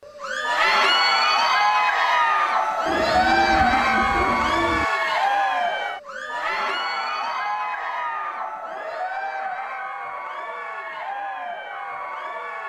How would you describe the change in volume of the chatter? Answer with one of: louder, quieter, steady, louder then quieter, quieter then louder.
quieter.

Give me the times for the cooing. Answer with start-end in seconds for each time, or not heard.
2.9-4.8.